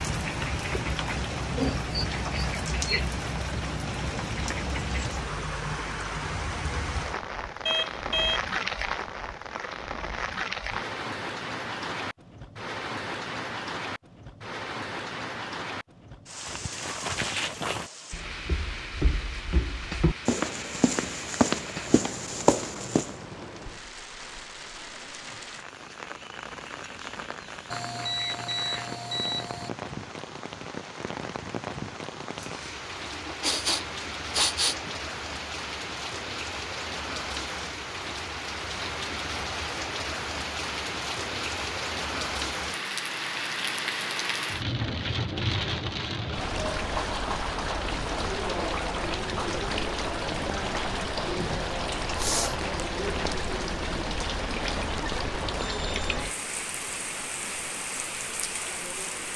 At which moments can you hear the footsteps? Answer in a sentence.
The footsteps can be heard from 16.4 to 23.1 s.